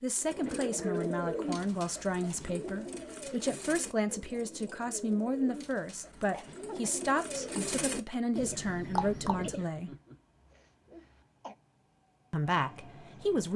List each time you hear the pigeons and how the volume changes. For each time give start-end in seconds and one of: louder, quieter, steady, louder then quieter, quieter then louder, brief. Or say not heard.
0.1-9.7 quieter then louder.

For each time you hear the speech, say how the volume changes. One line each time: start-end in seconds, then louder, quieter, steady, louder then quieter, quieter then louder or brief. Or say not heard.
0.0-9.9 steady
12.3-13.5 brief.